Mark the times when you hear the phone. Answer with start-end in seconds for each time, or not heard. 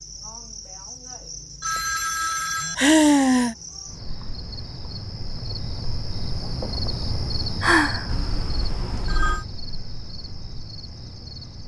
1.6-2.8, 8.1-9.4.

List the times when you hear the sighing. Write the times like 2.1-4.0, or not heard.
2.1-3.5, 7.6-8.1.